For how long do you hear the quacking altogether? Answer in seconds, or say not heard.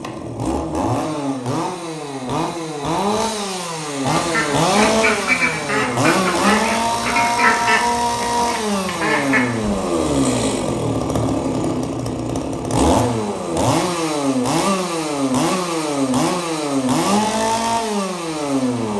6 s.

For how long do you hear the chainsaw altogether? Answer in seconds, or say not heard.
19 s.